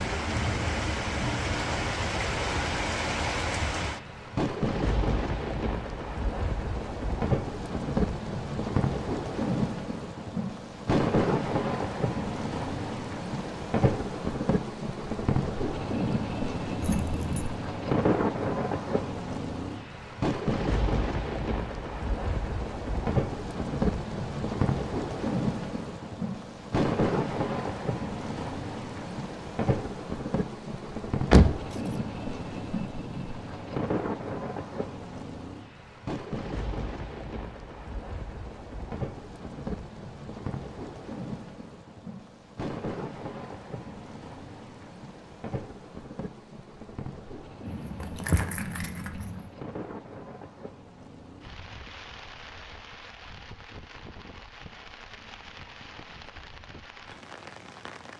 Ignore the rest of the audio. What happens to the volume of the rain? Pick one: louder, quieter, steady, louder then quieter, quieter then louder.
quieter.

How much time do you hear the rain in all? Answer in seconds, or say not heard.
58 s.